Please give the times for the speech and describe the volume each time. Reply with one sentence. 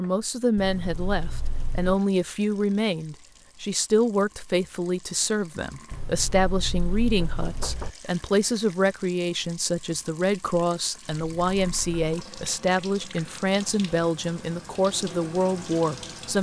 The speech can be heard from 0.0 to 16.3 s, at a steady volume.